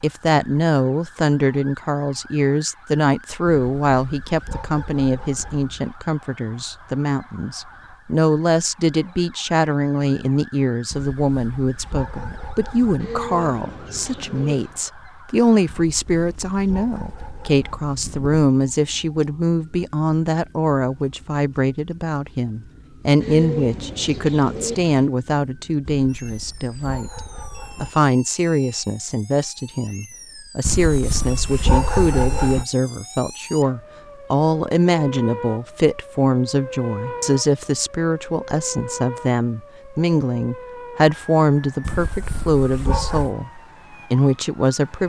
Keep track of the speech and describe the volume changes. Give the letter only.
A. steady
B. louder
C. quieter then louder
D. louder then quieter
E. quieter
A.